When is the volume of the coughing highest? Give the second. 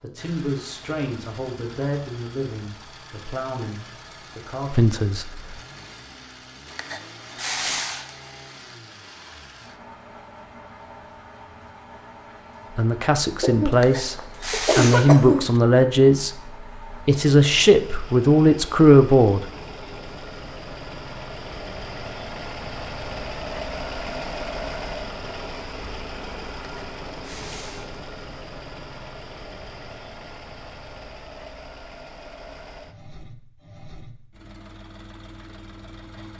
15 s.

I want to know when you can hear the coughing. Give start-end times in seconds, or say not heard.
13.4-15.4.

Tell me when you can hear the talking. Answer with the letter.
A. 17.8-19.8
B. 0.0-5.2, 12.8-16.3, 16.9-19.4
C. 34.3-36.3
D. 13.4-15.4
B.